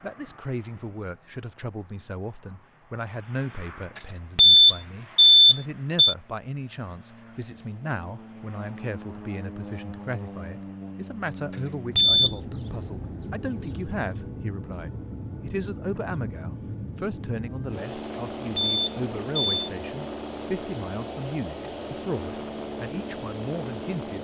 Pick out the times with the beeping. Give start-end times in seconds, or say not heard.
4.3-6.2, 11.9-12.3, 18.6-19.6.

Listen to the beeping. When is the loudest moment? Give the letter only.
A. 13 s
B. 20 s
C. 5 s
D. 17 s
C.